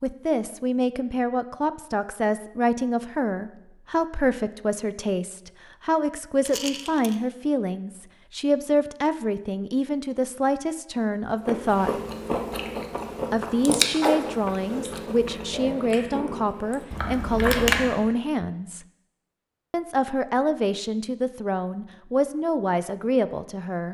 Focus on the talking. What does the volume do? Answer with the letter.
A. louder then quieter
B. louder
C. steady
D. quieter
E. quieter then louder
C.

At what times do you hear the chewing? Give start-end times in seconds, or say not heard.
11.4-18.1.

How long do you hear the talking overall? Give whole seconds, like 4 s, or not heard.
22 s.